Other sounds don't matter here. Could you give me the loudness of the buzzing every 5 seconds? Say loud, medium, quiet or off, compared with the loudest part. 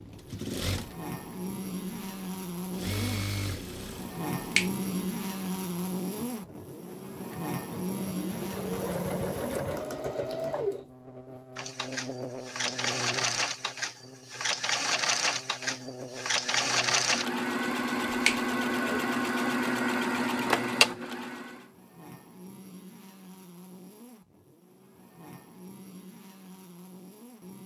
loud, loud, medium, medium, quiet, quiet.